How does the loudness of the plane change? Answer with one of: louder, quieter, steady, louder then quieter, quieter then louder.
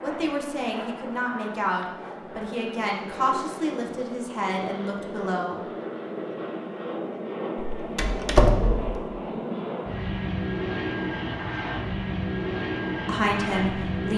louder.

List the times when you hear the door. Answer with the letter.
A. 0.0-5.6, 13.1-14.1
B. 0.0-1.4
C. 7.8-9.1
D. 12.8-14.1
C.